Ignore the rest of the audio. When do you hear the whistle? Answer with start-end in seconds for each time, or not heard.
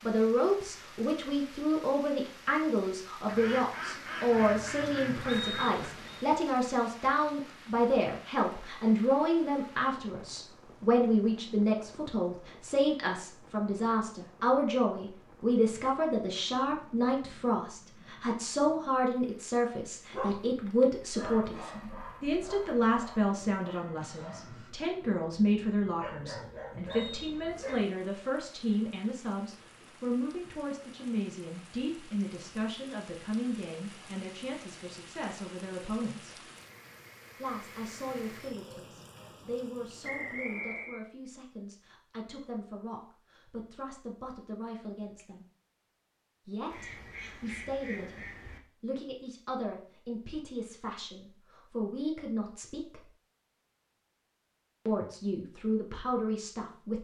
5.3-6.2, 26.9-27.9, 40.0-41.0.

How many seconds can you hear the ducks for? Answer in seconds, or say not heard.
5 s.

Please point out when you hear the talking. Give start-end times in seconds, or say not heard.
0.1-36.5, 37.4-45.5, 46.5-53.0, 54.9-56.9.